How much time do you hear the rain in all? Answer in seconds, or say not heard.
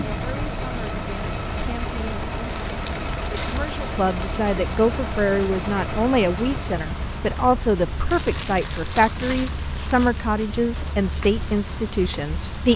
13 s.